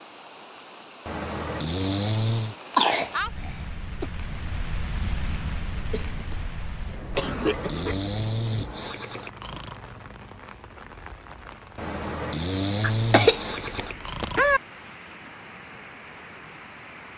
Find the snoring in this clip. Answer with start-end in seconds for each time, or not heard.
1.1-2.5, 7.1-9.8, 11.8-14.4.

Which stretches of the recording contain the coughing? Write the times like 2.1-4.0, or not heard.
2.8-4.1, 5.8-8.1, 12.8-14.6.